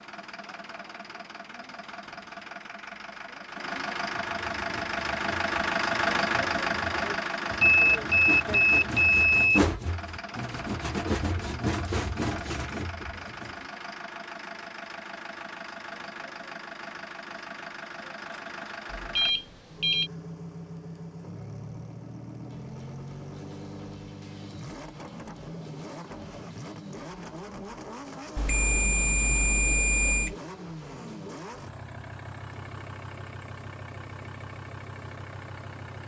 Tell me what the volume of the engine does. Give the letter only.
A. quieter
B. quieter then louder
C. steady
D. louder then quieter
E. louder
A.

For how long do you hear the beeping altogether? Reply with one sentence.
You can hear the beeping for 5 seconds altogether.